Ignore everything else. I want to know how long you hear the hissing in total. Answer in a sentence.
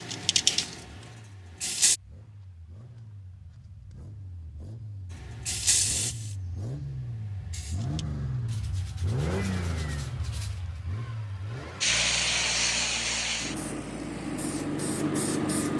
The hissing can be heard for 9 seconds in total.